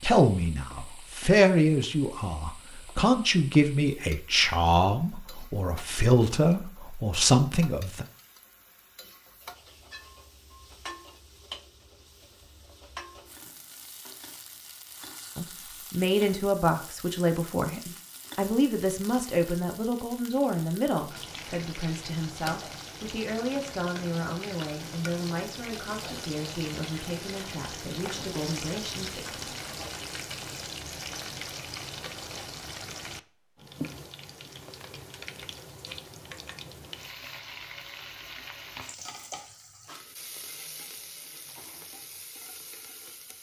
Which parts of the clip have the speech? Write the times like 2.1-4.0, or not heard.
0.0-8.1, 15.3-29.4.